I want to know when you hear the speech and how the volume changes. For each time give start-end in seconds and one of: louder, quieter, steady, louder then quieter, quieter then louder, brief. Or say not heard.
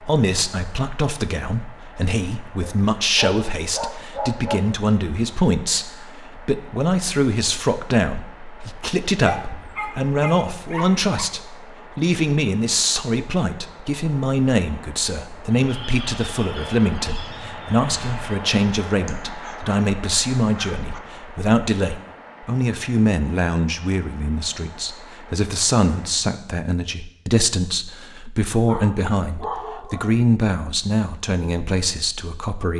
0.0-32.7 steady.